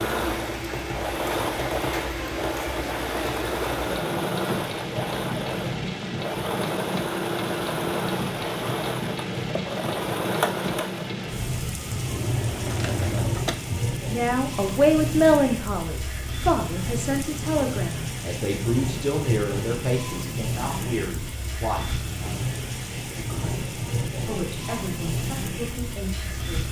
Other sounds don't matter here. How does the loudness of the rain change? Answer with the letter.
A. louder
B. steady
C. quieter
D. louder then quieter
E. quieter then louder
B.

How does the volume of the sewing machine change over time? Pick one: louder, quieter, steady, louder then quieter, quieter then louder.
steady.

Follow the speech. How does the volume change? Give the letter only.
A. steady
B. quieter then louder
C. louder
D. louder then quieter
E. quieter
E.